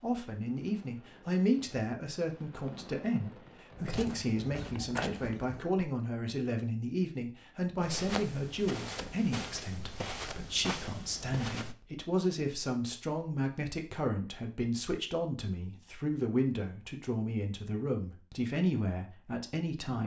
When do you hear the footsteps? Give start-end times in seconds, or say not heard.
3.8-5.9, 7.8-11.8.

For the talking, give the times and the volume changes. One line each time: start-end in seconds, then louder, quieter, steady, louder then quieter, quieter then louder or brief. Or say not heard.
0.0-20.0 steady.